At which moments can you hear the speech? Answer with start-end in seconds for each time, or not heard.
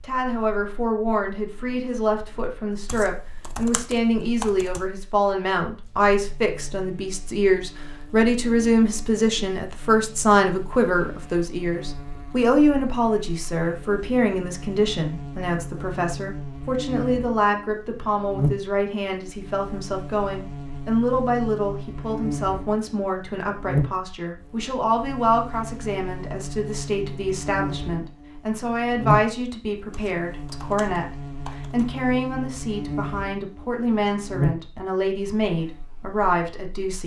0.0-37.0.